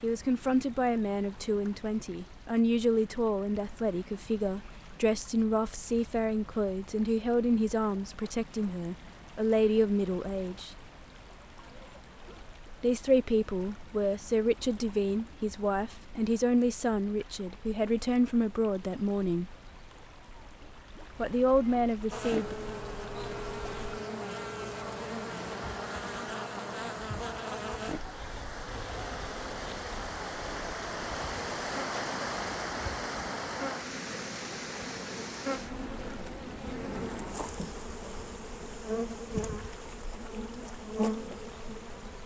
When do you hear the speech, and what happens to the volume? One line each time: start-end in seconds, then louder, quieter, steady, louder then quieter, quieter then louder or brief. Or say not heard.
0.0-10.8 steady
12.8-19.6 steady
21.1-22.6 brief.